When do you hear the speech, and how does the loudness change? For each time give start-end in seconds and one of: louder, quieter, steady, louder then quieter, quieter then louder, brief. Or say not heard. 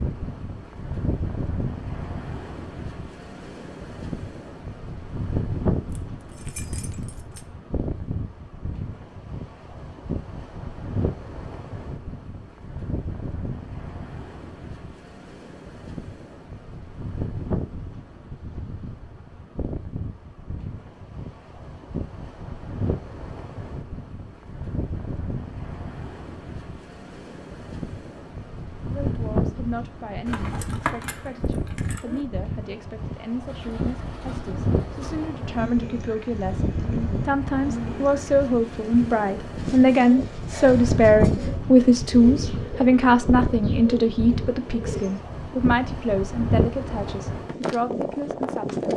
28.9-48.9 louder then quieter.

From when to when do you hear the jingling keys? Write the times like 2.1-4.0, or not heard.
5.9-7.5, 30.2-32.2.